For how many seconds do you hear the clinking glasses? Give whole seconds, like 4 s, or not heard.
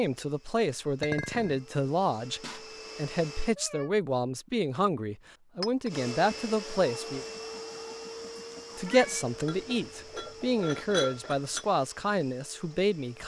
3 s.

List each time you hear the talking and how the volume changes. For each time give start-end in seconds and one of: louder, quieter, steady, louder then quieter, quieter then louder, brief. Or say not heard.
0.0-7.2 steady
8.8-13.2 steady.